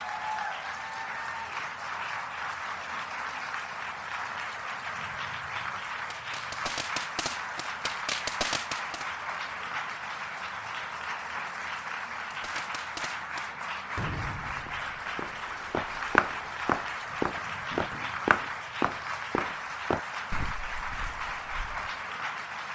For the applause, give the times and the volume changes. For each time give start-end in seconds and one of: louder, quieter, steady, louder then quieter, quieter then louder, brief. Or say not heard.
0.0-22.6 steady.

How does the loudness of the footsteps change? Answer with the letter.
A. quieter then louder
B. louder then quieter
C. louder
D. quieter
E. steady
D.